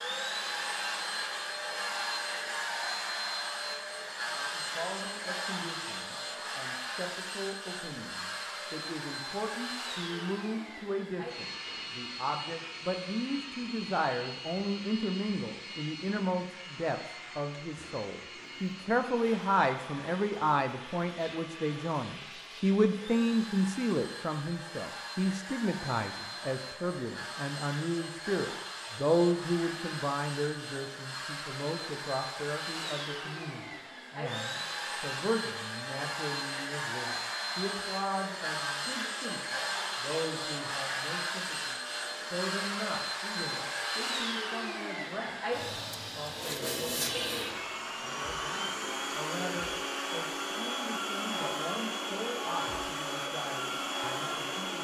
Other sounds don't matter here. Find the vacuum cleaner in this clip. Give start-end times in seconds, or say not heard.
0.0-54.7.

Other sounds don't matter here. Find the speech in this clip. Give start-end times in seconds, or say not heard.
4.2-45.5, 46.1-54.7.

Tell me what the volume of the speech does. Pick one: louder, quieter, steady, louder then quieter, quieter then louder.
louder then quieter.